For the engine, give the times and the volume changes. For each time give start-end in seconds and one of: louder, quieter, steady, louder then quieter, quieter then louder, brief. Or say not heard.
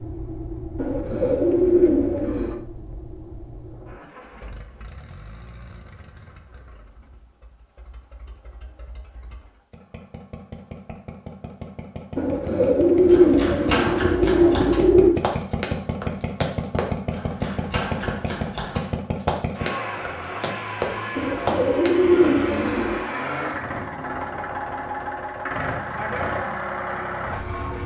0.0-27.8 quieter then louder.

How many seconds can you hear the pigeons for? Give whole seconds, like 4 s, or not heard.
7 s.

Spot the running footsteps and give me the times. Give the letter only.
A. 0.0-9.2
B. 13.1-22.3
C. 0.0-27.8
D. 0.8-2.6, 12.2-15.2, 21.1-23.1
B.